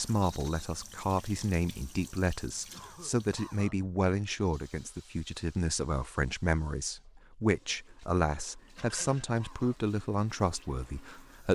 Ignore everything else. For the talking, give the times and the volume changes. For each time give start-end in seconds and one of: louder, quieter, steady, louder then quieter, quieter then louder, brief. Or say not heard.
0.0-11.5 steady.